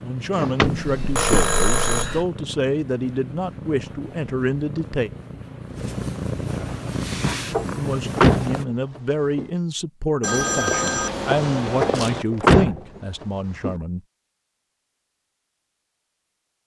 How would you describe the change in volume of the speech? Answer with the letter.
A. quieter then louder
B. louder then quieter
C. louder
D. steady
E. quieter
D.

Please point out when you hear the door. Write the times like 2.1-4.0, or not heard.
0.3-1.4, 7.5-9.4, 11.8-13.8.